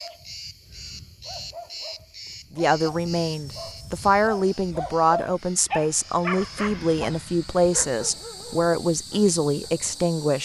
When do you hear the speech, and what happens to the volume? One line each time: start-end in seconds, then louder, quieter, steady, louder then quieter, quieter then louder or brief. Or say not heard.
2.5-10.3 steady.